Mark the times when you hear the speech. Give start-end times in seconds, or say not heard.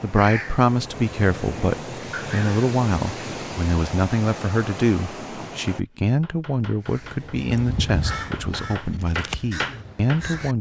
0.0-10.5.